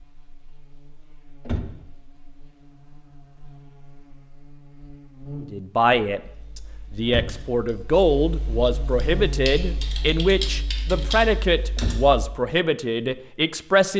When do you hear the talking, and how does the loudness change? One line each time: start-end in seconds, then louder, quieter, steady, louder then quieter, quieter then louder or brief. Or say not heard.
5.4-13.9 steady.